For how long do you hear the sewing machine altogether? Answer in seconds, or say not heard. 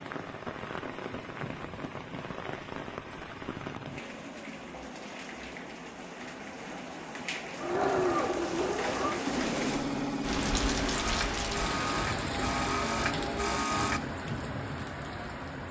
7 s.